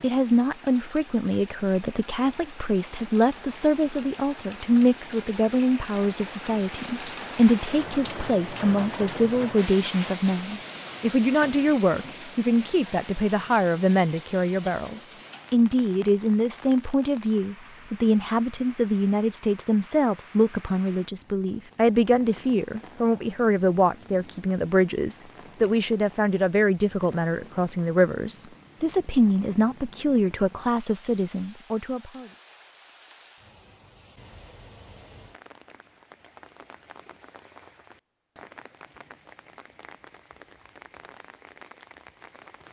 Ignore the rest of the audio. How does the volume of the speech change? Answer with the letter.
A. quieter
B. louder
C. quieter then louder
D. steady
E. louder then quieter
D.